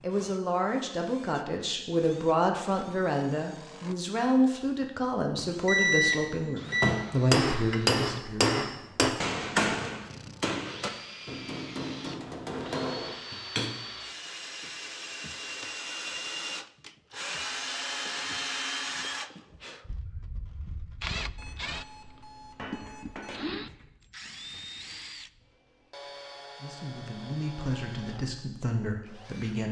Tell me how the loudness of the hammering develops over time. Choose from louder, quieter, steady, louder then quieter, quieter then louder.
quieter.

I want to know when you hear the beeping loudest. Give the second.
6 s.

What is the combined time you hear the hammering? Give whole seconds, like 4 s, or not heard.
7 s.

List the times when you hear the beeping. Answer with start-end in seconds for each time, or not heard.
5.7-7.0, 21.4-23.4.